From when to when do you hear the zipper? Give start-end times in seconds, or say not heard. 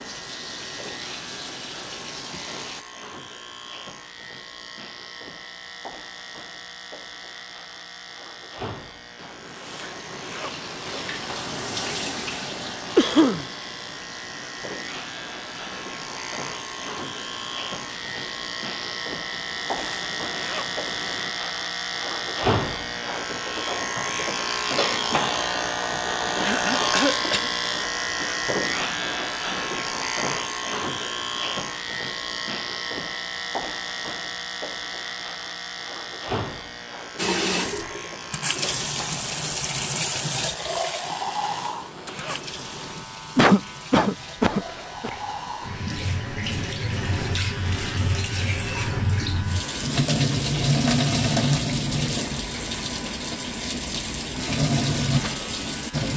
9.2-11.2, 19.3-21.4, 41.0-43.0.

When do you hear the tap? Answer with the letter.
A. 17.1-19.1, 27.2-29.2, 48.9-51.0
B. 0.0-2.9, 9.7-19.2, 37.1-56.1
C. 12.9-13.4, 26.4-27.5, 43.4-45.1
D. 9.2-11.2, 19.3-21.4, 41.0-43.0
B.